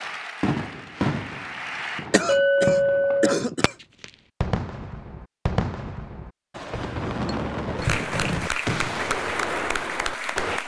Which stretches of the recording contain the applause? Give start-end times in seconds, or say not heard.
0.0-2.0, 7.8-10.6.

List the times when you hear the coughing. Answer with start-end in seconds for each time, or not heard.
2.1-3.8, 6.7-8.1.